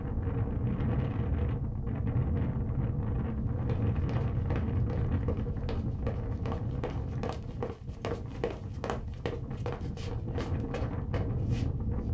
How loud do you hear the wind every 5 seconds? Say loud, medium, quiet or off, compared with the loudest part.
loud, medium, loud.